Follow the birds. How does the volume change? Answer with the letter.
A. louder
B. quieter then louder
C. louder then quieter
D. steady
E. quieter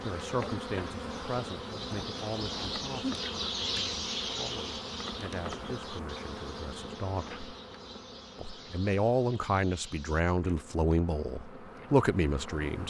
C.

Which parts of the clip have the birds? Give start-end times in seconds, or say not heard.
0.0-10.2.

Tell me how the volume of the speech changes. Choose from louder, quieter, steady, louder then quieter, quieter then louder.
quieter then louder.